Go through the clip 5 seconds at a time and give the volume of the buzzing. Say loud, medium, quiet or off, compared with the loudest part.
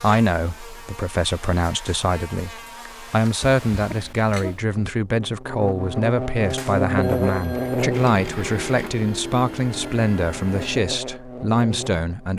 quiet, loud, medium.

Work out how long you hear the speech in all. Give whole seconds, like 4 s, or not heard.
12 s.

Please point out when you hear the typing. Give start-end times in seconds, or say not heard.
not heard.